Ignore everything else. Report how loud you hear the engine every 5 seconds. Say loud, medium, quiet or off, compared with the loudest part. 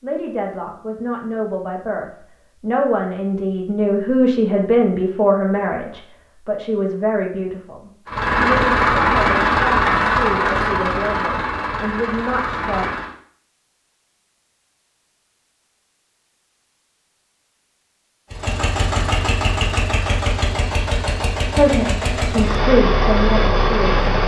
off, loud, medium, medium, medium.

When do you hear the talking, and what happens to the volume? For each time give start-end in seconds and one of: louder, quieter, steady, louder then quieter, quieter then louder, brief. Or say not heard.
0.0-12.9 louder then quieter
21.5-24.1 brief.